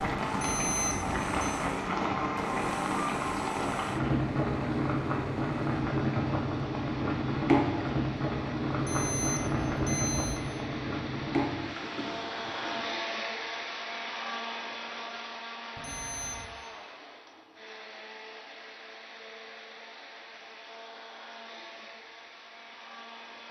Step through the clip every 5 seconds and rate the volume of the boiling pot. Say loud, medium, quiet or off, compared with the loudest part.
loud, loud, medium, off, off.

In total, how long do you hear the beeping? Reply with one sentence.
You can hear the beeping for 4 seconds altogether.